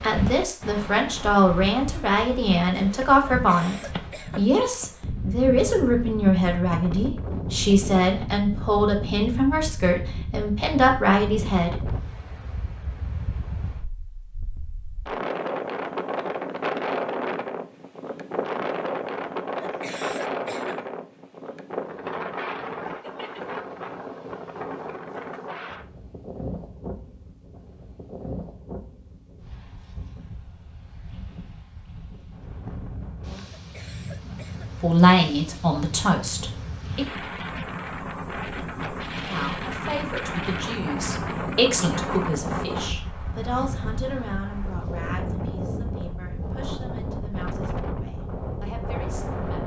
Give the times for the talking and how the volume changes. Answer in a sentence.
The talking can be heard from 0.0 to 11.8 s, at a steady volume; briefly from 34.8 to 37.0 s; and from 39.2 to 49.6 s, getting louder then quieter.